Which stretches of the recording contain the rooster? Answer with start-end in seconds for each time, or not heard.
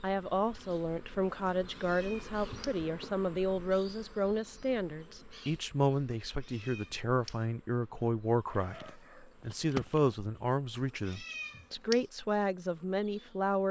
8.4-10.4.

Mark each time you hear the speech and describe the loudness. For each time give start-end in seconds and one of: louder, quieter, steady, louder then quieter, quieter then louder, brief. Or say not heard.
0.0-13.6 steady.